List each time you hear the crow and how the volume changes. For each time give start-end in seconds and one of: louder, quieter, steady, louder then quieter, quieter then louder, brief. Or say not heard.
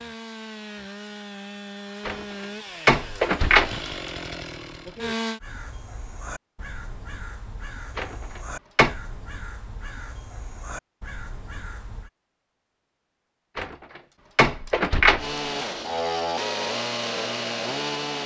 5.4-12.1 steady.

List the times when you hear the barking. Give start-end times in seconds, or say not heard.
not heard.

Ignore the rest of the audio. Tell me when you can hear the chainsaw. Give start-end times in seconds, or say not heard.
0.0-5.4, 15.2-18.2.